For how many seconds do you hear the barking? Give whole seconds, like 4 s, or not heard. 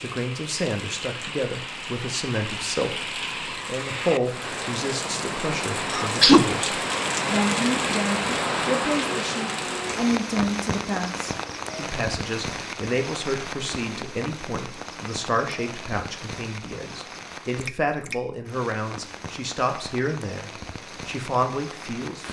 not heard.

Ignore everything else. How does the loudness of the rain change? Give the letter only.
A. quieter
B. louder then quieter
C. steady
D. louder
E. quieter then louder
B.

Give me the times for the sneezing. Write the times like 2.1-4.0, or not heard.
5.9-6.5.